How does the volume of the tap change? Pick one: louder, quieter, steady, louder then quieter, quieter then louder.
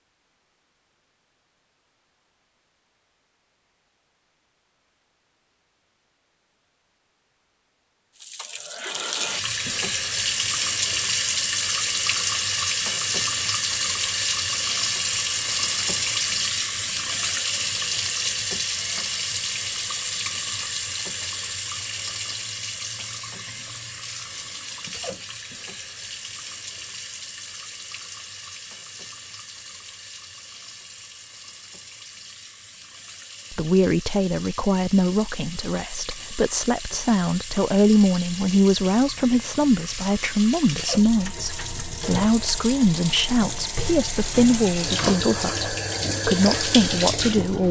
quieter then louder.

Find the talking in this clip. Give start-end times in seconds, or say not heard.
33.5-47.6.